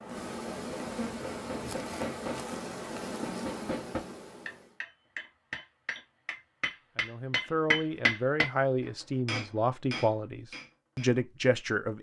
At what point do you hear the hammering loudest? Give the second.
8 s.